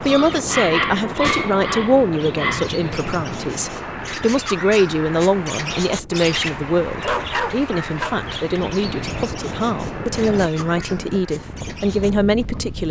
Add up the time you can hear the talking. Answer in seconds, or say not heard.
13 s.